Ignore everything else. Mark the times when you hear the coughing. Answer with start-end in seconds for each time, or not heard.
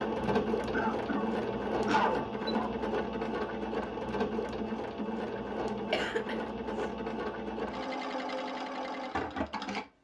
0.2-2.8, 5.3-6.3.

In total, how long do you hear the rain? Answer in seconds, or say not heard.
not heard.